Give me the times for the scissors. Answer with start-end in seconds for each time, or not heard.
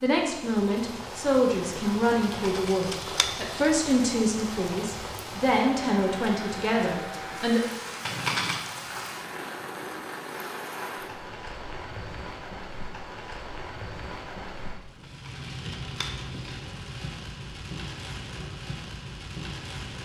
2.4-3.7, 8.0-8.7, 15.0-16.4.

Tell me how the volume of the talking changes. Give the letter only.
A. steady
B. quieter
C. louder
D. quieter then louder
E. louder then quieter
A.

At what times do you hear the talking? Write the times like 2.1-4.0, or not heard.
0.0-7.6.